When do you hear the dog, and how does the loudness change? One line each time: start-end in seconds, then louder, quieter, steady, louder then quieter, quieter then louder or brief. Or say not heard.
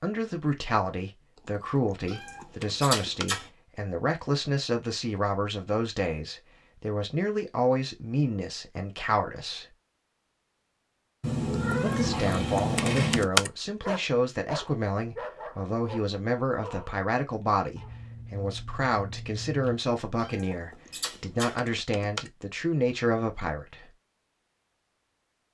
13.8-19.8 quieter.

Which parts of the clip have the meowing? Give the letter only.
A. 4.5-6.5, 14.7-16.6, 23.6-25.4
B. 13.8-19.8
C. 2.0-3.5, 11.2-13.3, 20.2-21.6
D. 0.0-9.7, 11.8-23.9
C.